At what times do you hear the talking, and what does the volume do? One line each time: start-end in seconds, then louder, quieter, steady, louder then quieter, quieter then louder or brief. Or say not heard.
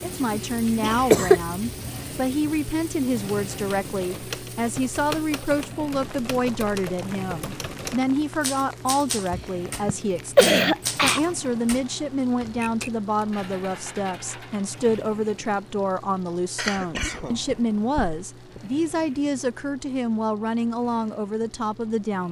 0.0-22.2 steady.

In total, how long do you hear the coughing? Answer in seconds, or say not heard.
5 s.